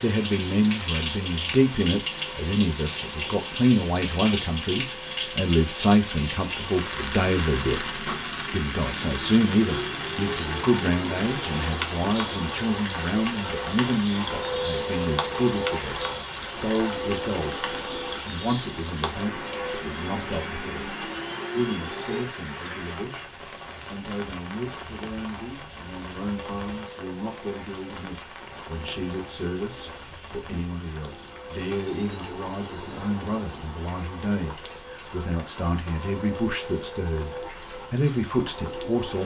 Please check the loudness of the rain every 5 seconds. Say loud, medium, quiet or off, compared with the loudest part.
loud, loud, loud, loud, medium, medium, quiet, quiet.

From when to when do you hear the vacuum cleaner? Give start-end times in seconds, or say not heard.
0.0-22.2, 26.1-39.2.